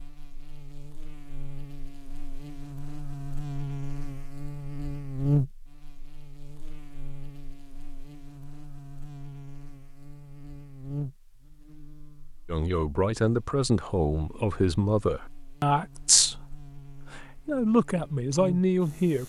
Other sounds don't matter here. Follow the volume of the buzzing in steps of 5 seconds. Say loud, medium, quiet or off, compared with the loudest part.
medium, loud, medium, medium.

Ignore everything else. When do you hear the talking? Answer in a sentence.
You can hear the talking from 12.5 to 19.2 s.